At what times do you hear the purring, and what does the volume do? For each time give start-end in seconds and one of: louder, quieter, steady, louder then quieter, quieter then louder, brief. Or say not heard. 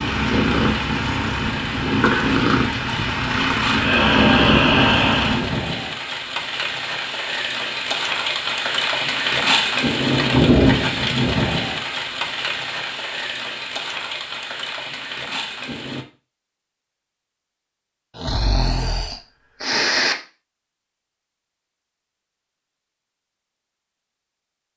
0.0-5.6 steady.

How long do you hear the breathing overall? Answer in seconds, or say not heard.
4 s.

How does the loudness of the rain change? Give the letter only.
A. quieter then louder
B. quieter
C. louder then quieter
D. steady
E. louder
C.